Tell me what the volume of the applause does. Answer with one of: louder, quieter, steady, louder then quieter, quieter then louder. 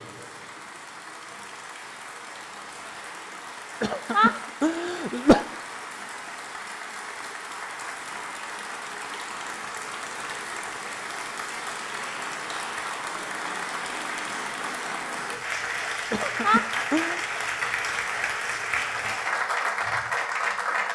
louder.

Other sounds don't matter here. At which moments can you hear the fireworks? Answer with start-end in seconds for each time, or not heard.
not heard.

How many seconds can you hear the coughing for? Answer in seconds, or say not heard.
3 s.